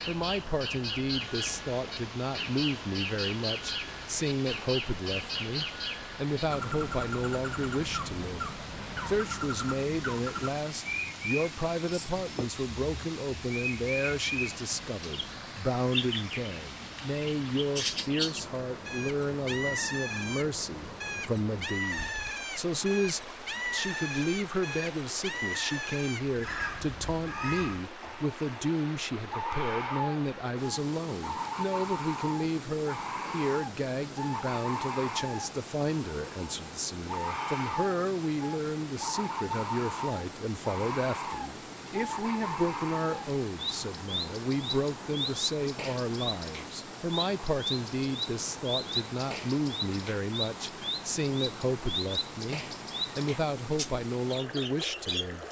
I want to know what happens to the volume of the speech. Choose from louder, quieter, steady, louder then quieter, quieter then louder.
steady.